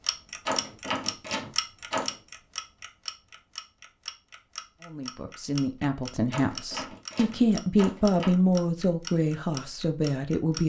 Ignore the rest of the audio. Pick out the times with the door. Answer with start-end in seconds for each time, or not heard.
0.5-2.1, 6.3-8.3.